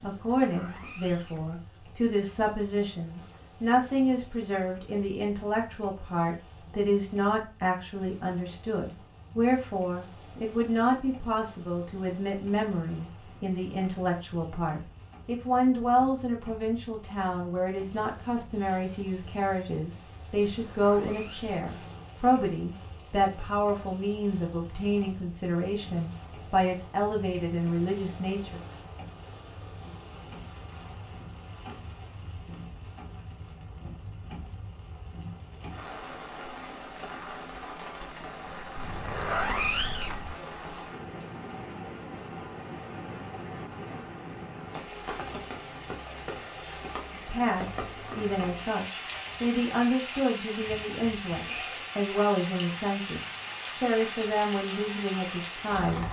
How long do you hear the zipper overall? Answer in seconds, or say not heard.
4 s.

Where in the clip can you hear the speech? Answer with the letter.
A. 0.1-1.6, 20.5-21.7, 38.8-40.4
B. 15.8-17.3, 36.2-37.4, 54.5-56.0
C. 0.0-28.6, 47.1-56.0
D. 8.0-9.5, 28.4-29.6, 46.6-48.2
C.